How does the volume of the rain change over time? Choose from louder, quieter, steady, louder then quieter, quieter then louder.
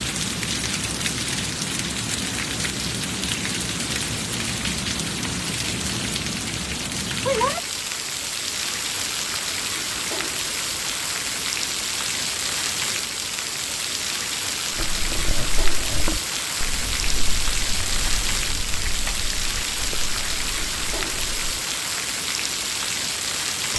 steady.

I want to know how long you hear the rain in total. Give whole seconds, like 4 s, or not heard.
24 s.